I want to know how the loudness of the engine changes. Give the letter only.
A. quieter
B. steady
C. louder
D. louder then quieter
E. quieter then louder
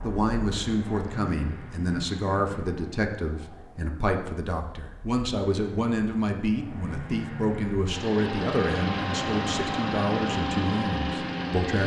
E.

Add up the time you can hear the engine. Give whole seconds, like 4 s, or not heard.
12 s.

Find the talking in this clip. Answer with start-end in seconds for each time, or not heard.
0.0-11.8.